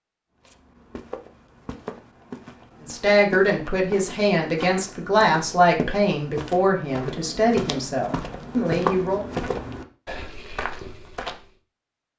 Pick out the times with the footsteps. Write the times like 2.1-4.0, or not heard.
0.5-11.4.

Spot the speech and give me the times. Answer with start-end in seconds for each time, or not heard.
2.8-9.2.